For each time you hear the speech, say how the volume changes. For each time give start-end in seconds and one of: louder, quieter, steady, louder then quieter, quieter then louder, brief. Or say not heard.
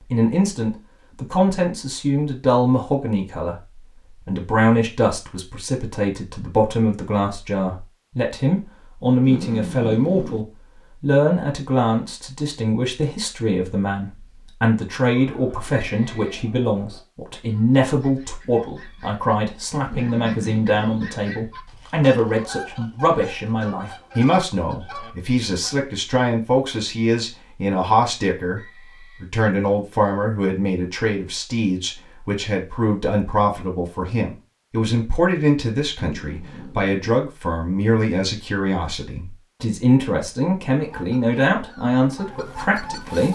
0.1-28.6 steady
29.2-43.2 steady.